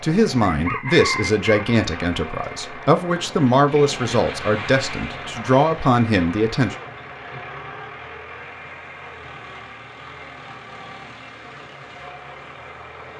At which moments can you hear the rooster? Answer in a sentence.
You can hear the rooster from 0.4 to 1.6 s.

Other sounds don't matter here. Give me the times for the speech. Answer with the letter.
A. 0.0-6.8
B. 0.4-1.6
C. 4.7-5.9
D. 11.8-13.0
A.